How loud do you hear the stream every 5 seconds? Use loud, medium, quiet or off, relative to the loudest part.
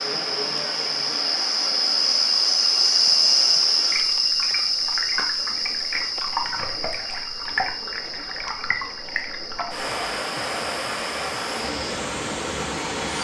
medium, loud, loud.